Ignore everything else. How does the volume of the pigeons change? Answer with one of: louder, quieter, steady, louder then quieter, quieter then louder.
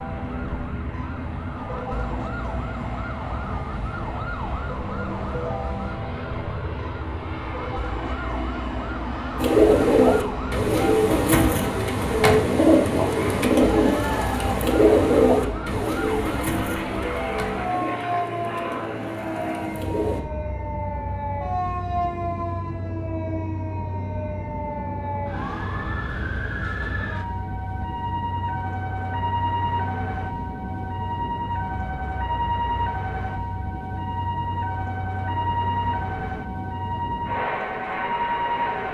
quieter.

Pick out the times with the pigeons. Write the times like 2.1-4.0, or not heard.
9.4-20.2.